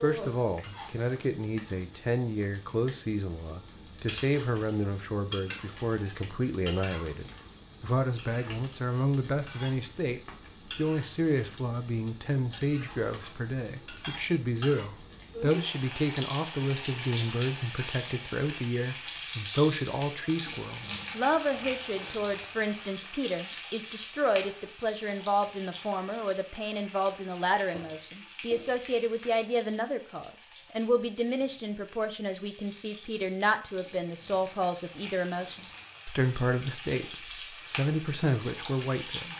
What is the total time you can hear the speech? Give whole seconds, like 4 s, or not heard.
39 s.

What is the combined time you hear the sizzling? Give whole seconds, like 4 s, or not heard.
39 s.